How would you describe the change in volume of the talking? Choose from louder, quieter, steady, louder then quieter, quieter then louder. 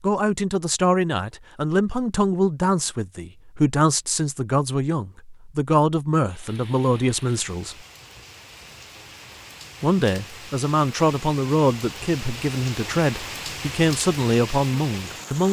steady.